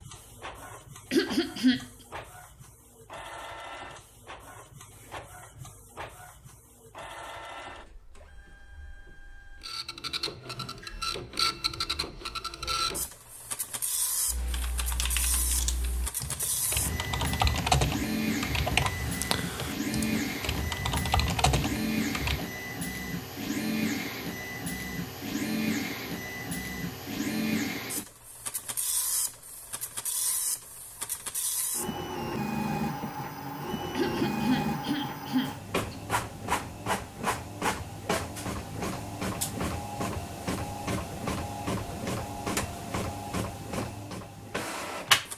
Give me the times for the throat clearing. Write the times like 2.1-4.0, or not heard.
1.1-1.8, 33.9-36.0.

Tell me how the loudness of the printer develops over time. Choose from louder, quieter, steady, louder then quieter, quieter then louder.
louder.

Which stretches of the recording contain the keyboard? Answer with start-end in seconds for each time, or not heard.
14.2-22.4.